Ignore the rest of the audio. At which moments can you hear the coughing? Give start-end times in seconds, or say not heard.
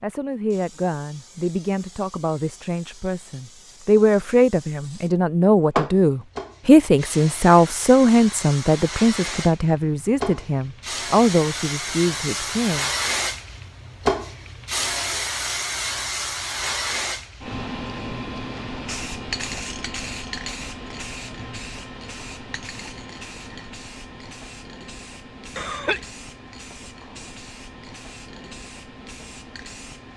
25.5-26.1.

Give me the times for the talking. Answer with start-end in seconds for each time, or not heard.
0.0-12.9.